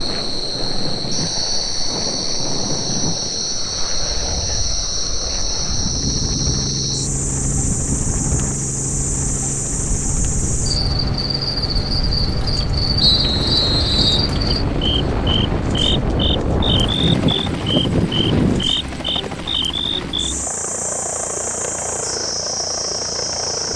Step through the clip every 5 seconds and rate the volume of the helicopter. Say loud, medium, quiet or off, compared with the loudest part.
medium, loud, loud, loud, loud.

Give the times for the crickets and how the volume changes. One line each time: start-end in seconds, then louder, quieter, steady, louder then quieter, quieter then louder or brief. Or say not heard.
0.0-23.7 steady.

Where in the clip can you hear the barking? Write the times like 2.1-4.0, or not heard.
not heard.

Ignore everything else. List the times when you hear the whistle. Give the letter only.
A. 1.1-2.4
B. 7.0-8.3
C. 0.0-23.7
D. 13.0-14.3
D.